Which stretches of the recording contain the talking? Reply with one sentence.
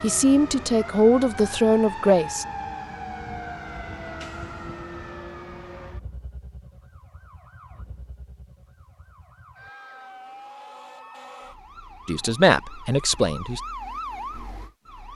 You can hear the talking from 0.0 to 2.5 s and from 12.1 to 13.6 s.